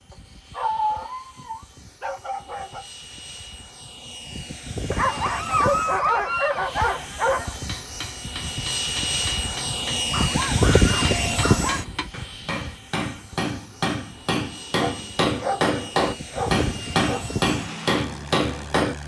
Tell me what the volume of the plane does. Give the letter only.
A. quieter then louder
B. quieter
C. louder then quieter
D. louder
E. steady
C.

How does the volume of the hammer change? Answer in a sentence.
The volume of the hammer goes up.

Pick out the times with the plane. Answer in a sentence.
The plane can be heard from 0.1 to 19.0 s.